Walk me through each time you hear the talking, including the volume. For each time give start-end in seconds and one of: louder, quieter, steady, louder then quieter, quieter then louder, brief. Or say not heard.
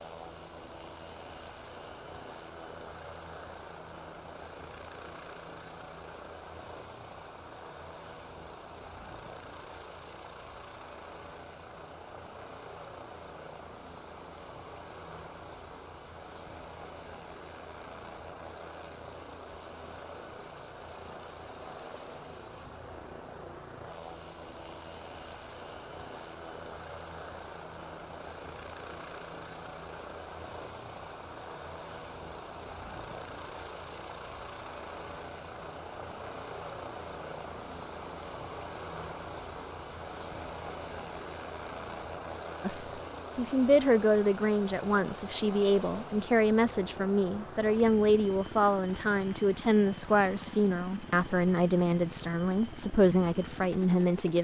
42.6-54.3 steady.